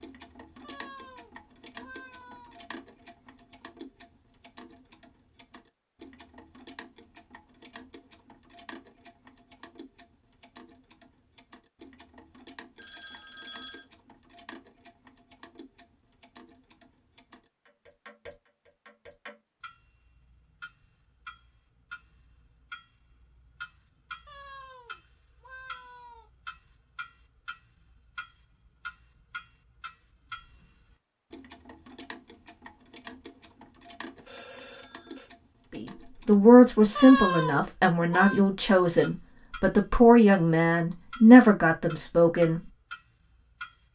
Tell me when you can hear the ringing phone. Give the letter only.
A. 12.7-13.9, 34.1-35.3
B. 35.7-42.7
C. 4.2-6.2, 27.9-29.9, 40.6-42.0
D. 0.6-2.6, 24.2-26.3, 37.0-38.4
A.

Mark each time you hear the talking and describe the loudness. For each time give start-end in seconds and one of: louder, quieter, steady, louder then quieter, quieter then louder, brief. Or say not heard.
35.7-42.7 quieter then louder.